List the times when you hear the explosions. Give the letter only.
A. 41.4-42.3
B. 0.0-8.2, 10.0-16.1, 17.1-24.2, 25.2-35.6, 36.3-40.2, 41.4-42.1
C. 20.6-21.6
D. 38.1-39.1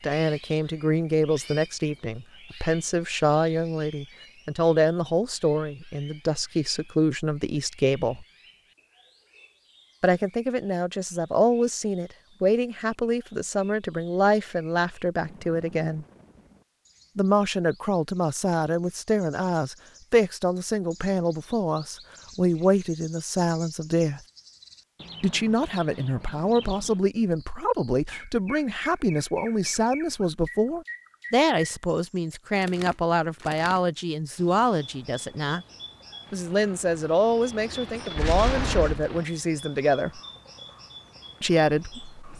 D.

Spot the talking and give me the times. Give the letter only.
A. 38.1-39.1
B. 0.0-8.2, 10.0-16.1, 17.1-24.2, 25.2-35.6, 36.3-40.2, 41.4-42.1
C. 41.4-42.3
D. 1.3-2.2
B.